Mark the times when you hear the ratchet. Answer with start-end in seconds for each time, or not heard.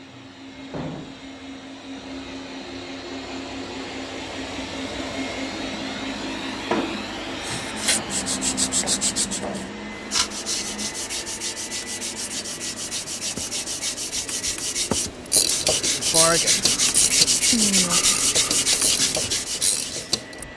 15.3-20.4.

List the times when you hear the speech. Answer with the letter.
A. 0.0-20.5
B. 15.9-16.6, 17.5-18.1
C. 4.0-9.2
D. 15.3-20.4
B.